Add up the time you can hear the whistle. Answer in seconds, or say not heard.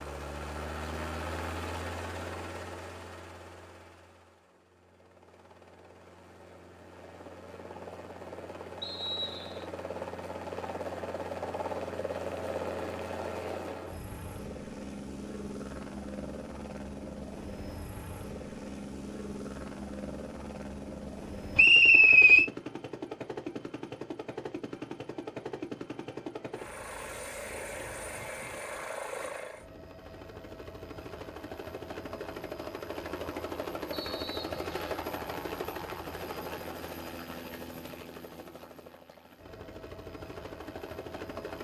3 s.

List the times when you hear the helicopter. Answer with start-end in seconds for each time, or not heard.
0.0-41.6.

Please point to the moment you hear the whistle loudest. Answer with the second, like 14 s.
22 s.